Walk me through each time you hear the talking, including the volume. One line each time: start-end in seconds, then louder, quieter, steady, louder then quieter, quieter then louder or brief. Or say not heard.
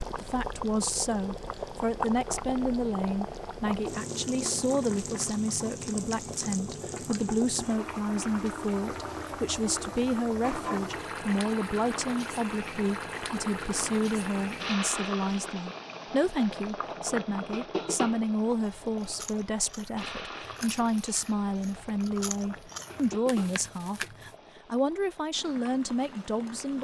0.0-26.7 steady.